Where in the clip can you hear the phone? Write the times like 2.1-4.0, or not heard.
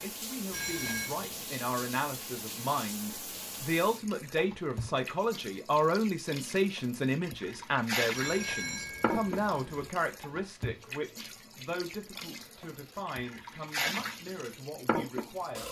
0.5-1.1, 8.1-9.9.